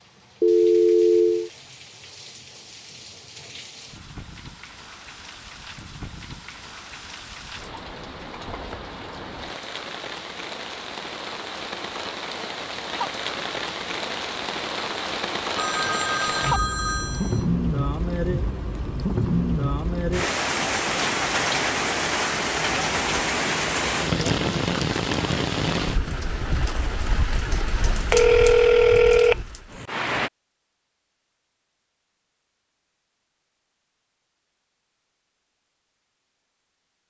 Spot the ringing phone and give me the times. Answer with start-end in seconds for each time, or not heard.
0.4-1.5, 15.6-17.4, 28.1-29.4.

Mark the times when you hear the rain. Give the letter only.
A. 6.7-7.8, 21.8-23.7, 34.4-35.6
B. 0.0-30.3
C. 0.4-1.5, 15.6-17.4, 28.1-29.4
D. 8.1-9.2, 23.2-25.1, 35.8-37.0
B.